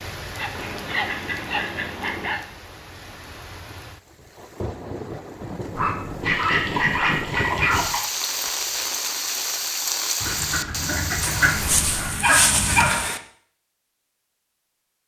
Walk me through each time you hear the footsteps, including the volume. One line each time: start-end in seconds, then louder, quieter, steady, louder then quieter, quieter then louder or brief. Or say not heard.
not heard.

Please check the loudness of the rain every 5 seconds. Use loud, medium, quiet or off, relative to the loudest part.
medium, loud, loud.